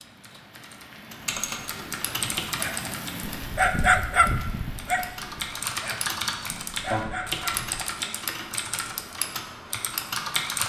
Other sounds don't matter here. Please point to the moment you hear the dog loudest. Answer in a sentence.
The volume of the dog peaks at 4 seconds.